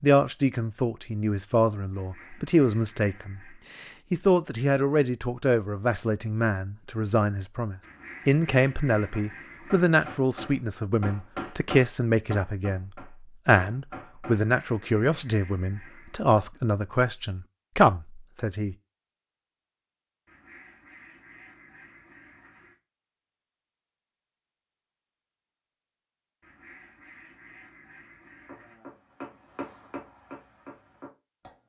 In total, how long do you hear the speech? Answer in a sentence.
You can hear the speech for 19 seconds altogether.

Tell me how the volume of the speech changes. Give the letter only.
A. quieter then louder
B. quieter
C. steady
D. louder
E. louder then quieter
C.